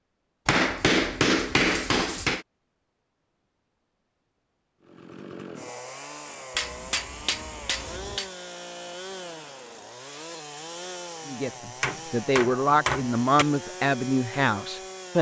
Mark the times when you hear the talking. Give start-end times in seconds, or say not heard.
11.2-15.1.